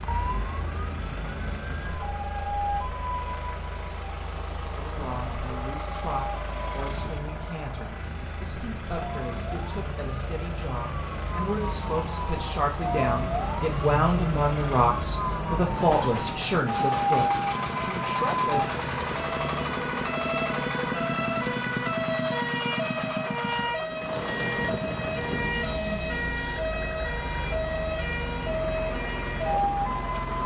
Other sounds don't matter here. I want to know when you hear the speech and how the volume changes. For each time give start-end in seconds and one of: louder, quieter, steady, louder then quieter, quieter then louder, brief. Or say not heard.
4.8-18.6 louder.